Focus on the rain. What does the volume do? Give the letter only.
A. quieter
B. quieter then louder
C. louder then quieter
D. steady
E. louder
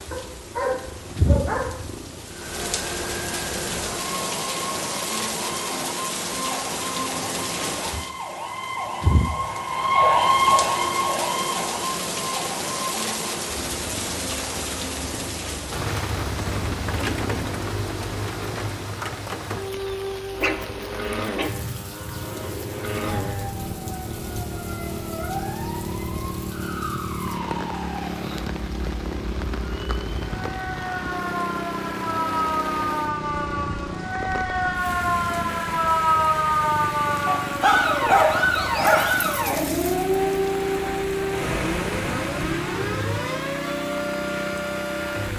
A.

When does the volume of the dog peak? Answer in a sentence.
The loudest moment of the dog is at 38 seconds.